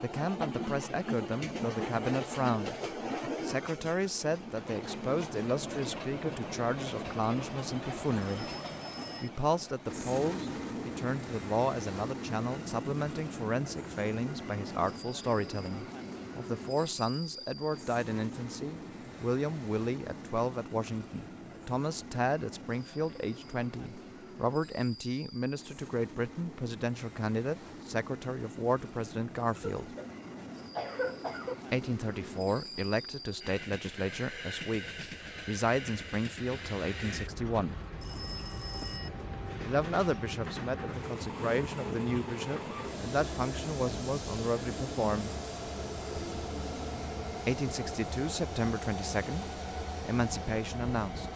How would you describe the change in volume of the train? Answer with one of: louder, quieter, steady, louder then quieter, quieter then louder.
quieter then louder.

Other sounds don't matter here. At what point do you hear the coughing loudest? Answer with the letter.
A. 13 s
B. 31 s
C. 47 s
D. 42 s
B.